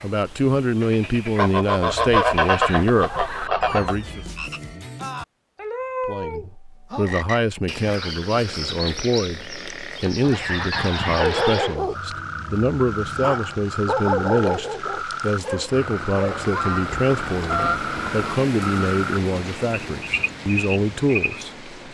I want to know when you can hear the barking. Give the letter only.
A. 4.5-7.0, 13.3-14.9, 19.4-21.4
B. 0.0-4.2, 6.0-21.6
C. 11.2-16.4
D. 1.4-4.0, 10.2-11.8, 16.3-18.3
C.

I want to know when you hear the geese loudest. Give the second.
2 s.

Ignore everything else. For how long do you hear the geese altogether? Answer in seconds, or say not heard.
6 s.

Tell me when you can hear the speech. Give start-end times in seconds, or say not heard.
0.0-4.2, 6.0-21.6.